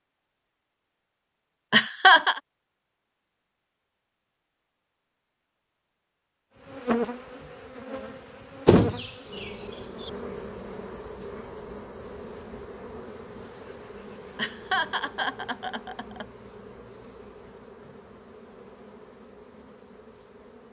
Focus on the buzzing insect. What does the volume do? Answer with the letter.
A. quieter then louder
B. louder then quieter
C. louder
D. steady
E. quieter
E.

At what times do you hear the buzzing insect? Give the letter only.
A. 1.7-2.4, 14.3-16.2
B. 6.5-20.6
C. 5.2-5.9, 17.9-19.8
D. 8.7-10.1
B.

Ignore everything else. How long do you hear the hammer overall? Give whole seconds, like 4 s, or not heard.
not heard.